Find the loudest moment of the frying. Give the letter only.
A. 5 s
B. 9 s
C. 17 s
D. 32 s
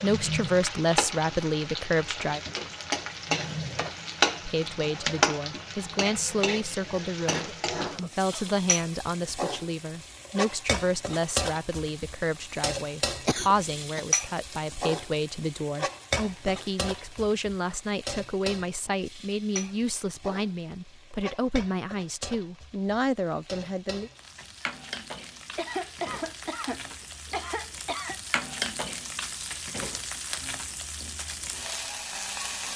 A.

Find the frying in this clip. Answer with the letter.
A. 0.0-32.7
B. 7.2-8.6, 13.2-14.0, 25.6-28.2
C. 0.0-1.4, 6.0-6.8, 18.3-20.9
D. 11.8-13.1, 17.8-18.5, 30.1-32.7
A.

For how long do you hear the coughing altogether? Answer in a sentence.
You can hear the coughing for 5 seconds altogether.